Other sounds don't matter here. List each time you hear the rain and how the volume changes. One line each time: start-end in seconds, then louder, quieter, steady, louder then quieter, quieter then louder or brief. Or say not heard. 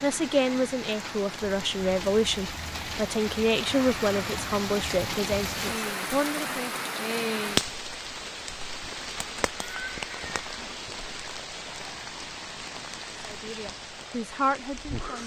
0.0-15.2 louder then quieter.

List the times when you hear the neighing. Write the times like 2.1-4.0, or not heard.
9.6-10.8.